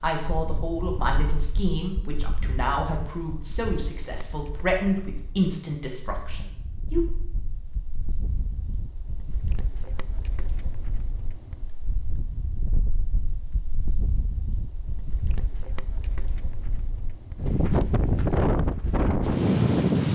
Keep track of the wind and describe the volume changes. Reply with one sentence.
The volume of the wind goes up.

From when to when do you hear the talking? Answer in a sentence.
The talking can be heard from 0.0 to 7.0 s.